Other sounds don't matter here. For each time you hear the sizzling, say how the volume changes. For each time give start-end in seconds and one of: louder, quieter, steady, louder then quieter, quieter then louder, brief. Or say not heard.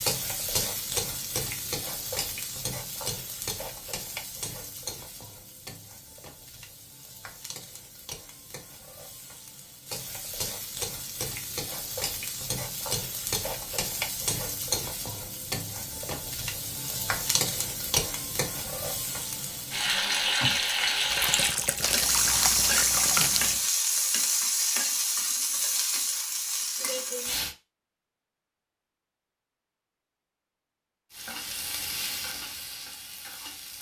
0.0-27.6 quieter then louder
31.1-33.7 brief.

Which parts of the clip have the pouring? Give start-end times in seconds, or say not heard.
21.1-23.6.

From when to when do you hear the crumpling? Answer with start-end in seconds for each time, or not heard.
21.8-23.7.